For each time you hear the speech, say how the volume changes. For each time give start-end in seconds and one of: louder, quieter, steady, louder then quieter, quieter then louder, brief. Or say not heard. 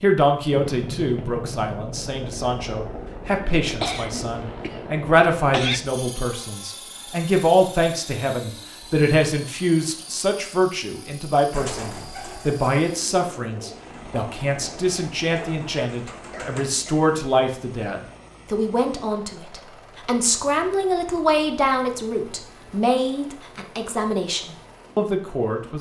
0.0-25.7 steady.